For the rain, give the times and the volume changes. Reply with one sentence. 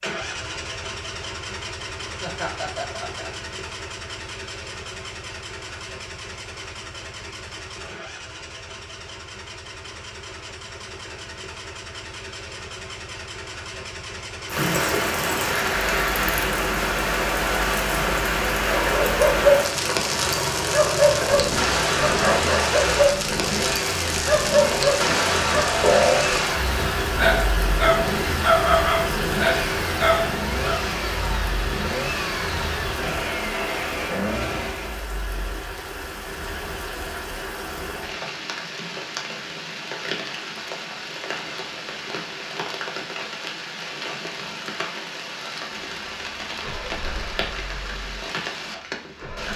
The rain can be heard from 14.4 to 49.5 s, getting quieter.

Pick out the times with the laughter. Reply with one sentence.
The laughter can be heard from 2.2 to 3.3 s.